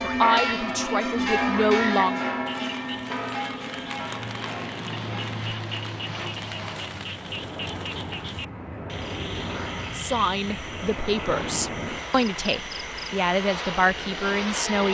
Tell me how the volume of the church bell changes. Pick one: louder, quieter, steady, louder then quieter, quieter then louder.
quieter.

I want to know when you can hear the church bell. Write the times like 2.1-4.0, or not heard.
0.0-5.4.